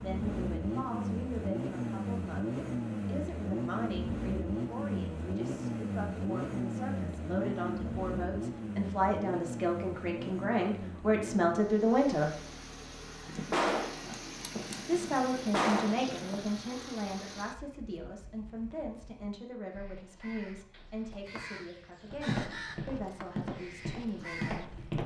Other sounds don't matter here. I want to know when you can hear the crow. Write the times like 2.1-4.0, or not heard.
19.6-24.9.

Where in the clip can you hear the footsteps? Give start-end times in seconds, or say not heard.
22.1-25.0.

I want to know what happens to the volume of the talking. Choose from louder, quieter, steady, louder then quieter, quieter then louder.
louder then quieter.